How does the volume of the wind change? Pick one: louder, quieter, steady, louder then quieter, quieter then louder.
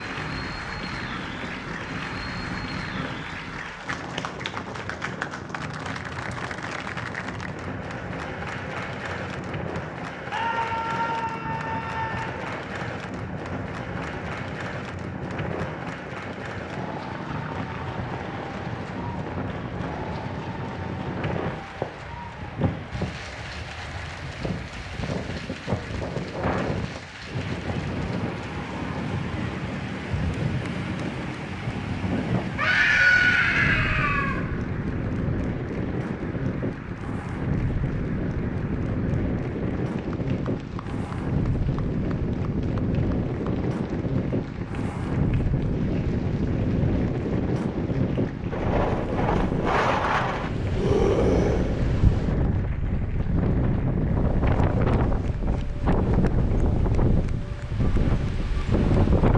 louder.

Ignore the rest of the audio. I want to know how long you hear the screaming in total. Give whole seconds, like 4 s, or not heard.
5 s.